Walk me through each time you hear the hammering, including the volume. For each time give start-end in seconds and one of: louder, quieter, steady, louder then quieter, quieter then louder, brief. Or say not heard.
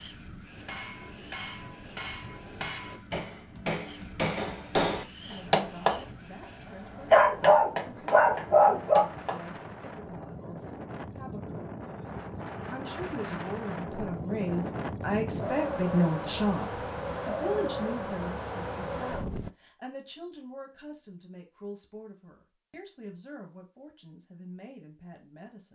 0.5-9.4 louder then quieter.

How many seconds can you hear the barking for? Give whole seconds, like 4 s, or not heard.
2 s.